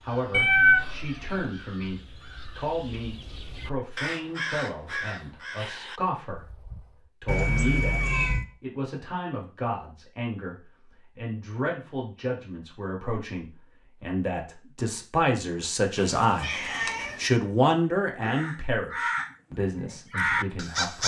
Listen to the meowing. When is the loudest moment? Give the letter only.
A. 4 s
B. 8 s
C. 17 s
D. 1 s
D.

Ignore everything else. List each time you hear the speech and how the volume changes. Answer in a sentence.
The speech can be heard from 0.0 to 21.0 s, getting louder.